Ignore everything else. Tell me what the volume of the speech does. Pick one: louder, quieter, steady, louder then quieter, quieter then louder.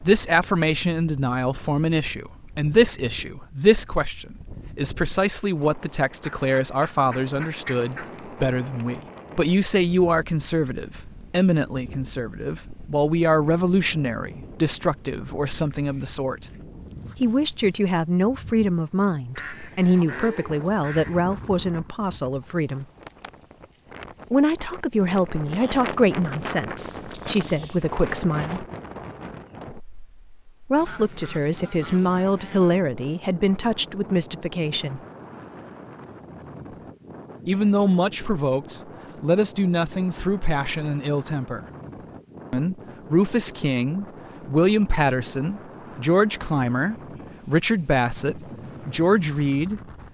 steady.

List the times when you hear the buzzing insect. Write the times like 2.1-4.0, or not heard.
not heard.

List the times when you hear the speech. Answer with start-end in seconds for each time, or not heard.
0.0-16.4, 17.2-22.9, 24.3-28.6, 30.7-35.0, 37.5-41.6, 42.5-49.8.